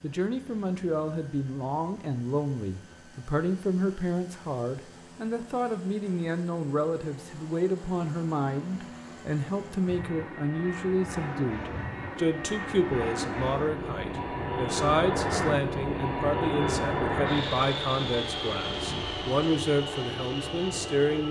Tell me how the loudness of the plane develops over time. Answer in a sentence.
The volume of the plane goes up.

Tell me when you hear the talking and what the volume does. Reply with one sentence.
You can hear the talking from 0.0 to 21.2 s, at a steady volume.